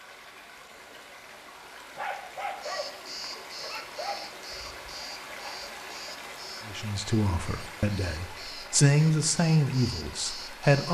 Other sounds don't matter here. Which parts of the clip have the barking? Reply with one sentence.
You can hear the barking from 1.9 to 4.4 s.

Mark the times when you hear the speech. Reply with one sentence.
The speech can be heard from 6.7 to 10.8 s.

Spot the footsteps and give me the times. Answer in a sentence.
You can't hear the footsteps here.